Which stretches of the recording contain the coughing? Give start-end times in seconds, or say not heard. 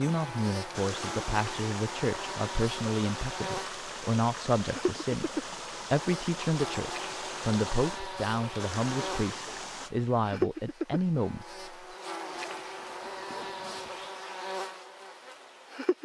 not heard.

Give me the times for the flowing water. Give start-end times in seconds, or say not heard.
0.0-9.9.